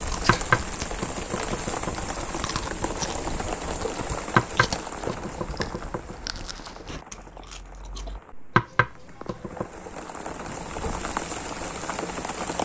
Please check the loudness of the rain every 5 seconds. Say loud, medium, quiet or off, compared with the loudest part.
loud, medium, loud.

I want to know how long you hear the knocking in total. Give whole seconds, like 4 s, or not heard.
5 s.